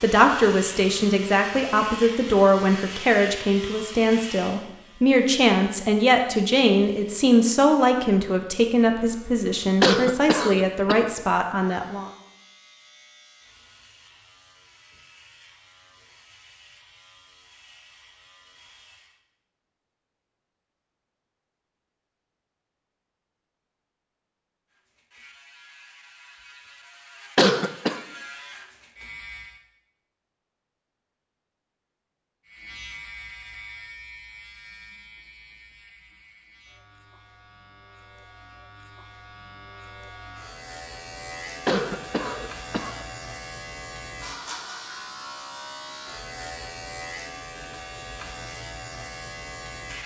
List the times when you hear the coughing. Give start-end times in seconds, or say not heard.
9.8-11.1, 27.4-28.0, 41.6-43.0.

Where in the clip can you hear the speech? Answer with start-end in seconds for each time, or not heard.
0.0-12.1.